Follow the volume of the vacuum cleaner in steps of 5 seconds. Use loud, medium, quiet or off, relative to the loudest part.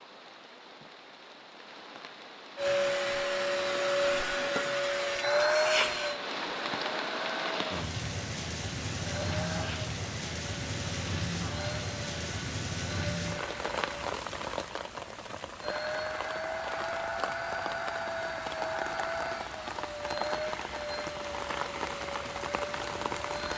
loud, loud, quiet, medium, medium.